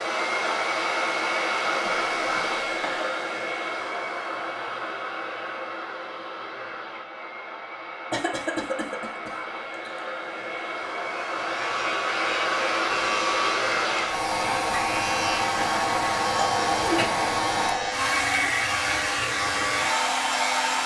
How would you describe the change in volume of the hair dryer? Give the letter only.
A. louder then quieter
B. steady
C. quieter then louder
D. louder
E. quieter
C.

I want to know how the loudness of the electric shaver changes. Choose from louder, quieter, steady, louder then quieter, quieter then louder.
steady.